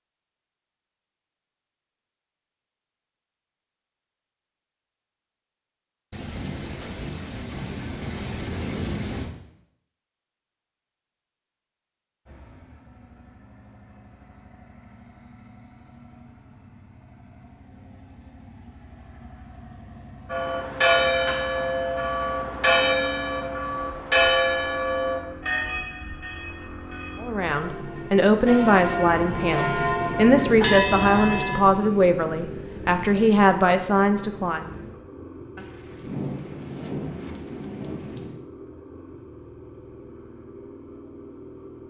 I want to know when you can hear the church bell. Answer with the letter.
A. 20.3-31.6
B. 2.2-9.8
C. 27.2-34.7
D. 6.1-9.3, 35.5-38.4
A.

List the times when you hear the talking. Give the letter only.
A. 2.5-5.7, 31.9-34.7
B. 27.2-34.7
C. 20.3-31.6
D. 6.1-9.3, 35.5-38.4
B.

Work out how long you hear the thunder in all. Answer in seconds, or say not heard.
6 s.